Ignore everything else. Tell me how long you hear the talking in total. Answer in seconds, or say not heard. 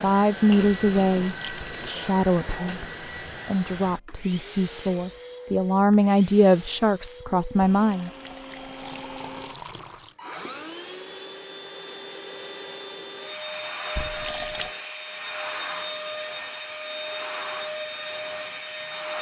8 s.